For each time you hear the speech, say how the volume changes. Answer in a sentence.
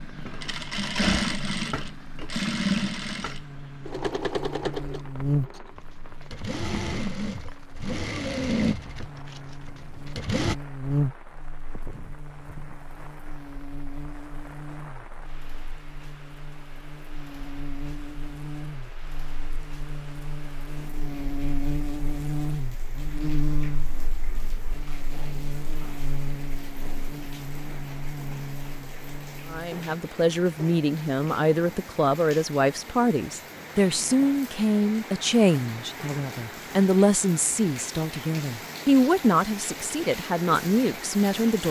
You can hear the speech from 29.5 to 41.6 s, at a steady volume.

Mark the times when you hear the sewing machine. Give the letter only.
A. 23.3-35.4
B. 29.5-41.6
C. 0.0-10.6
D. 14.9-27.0
C.